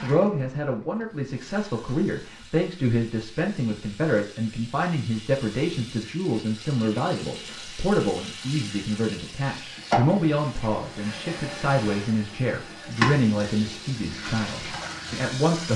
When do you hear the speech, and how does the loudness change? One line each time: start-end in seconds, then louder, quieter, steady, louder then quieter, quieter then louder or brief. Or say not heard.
0.0-15.7 steady.